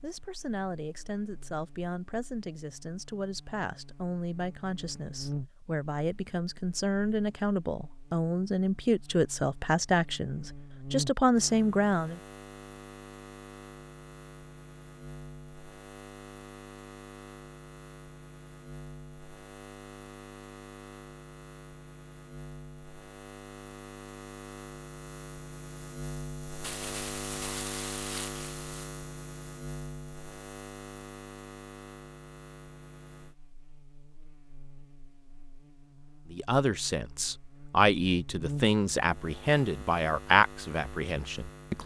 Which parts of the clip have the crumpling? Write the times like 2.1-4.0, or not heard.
26.6-28.9.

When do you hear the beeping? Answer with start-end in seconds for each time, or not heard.
not heard.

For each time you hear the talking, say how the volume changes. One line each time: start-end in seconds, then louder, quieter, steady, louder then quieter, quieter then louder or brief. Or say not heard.
0.0-12.2 louder
36.3-41.8 louder then quieter.